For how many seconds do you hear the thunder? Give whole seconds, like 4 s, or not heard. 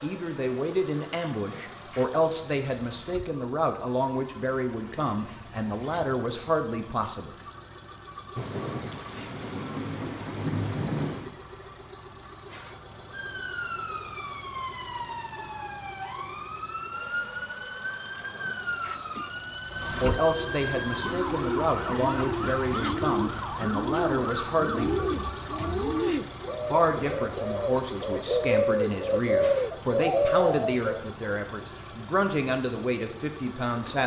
3 s.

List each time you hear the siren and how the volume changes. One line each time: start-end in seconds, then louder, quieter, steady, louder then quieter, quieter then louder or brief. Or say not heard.
13.1-25.9 steady.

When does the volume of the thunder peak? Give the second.
11 s.